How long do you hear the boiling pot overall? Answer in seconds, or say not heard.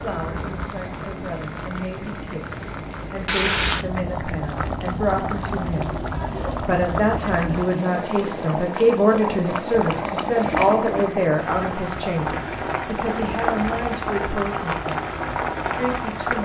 16 s.